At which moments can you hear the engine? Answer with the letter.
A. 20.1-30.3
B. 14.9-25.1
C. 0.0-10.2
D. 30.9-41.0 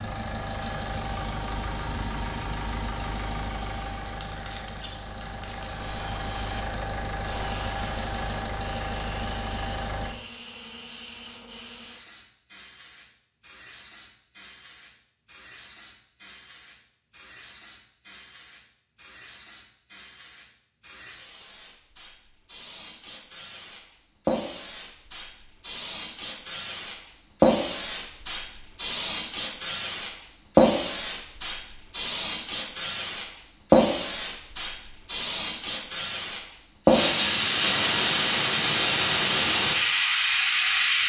C.